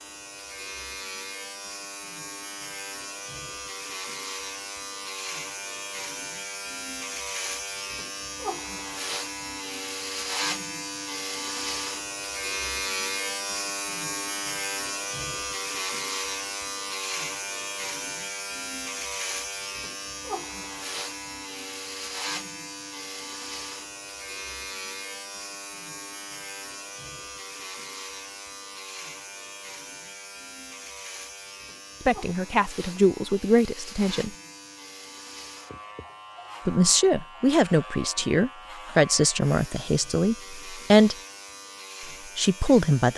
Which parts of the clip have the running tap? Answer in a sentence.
You can't hear the running tap here.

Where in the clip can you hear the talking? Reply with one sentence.
You can hear the talking from 32.0 to 34.3 s, from 36.6 to 41.1 s and from 42.4 to 43.1 s.